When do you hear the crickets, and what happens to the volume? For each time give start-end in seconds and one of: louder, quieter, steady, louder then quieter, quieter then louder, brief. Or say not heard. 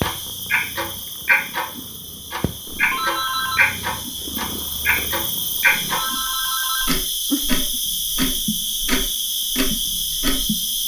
0.0-10.8 louder.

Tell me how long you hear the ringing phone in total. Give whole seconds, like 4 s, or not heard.
2 s.